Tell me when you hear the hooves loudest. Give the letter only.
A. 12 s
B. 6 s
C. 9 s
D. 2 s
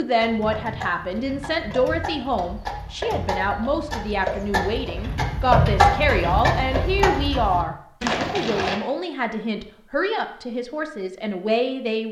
B.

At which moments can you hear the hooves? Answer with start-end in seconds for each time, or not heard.
0.2-8.8.